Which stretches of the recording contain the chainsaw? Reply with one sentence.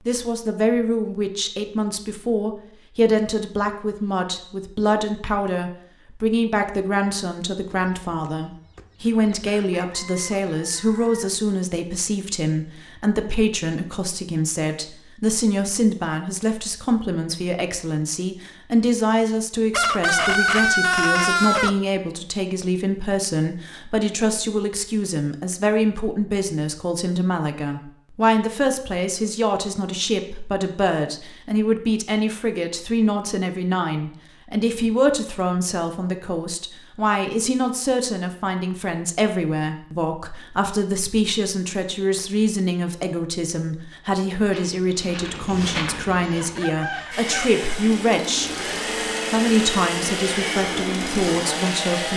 You can hear the chainsaw from 47.1 to 52.1 s.